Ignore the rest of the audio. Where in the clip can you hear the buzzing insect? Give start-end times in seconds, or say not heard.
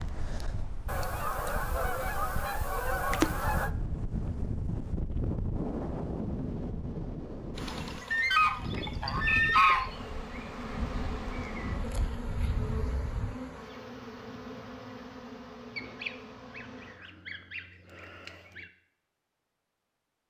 7.5-17.0.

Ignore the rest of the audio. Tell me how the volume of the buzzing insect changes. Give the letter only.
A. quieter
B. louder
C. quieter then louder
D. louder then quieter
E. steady
A.